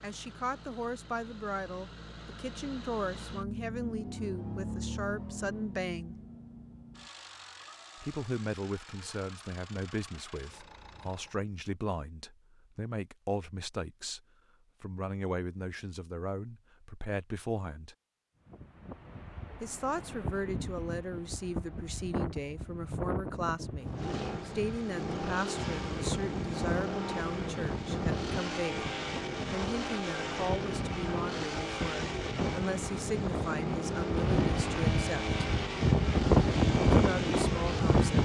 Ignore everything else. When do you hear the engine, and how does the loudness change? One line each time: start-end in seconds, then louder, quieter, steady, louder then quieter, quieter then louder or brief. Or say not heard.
0.0-11.4 louder then quieter
23.8-38.1 steady.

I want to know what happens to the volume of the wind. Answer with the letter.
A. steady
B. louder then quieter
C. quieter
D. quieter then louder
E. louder
E.